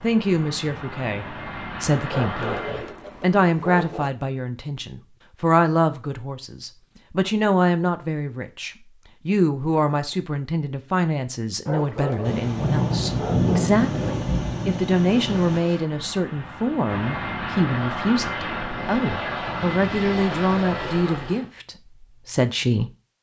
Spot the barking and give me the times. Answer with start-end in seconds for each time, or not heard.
2.1-4.1, 11.7-13.8.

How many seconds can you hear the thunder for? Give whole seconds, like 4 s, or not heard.
3 s.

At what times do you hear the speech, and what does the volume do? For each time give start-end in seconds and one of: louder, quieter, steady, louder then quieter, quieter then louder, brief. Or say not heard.
0.0-22.9 steady.